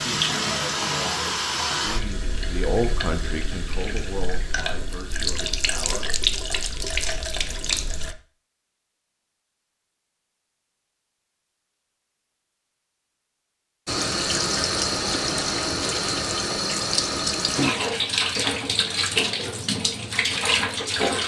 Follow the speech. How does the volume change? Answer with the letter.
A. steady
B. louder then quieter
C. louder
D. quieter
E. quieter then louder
B.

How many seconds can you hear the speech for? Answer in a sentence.
The speech can be heard for 6 seconds in total.